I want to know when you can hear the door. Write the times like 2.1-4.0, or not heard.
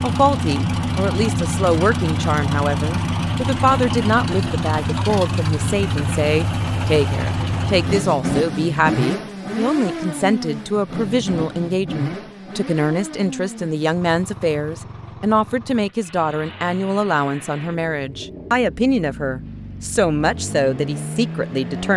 not heard.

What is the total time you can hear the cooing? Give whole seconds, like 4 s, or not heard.
not heard.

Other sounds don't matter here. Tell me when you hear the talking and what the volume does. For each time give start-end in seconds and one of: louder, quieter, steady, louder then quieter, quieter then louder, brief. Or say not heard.
0.0-21.9 steady.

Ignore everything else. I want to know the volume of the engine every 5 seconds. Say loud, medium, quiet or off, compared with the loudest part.
loud, loud, medium, quiet, medium.